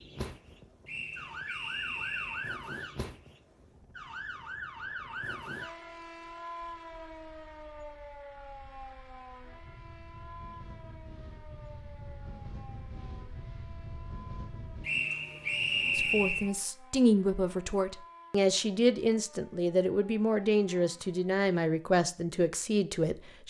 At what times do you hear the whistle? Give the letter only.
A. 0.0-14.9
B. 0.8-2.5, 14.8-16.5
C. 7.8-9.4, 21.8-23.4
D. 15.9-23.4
B.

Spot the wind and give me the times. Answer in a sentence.
You can hear the wind from 0.0 to 14.9 s.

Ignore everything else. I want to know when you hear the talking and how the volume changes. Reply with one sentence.
The talking can be heard from 15.9 to 23.4 s, at a steady volume.